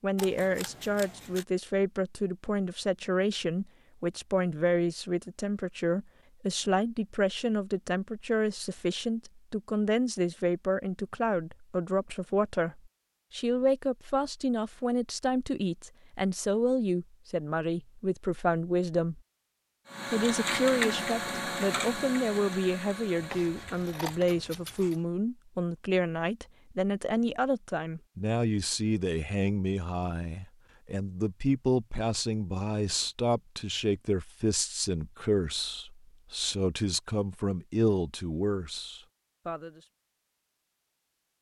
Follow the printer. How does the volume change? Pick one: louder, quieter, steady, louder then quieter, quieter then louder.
quieter.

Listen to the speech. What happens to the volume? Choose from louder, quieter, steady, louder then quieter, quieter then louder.
steady.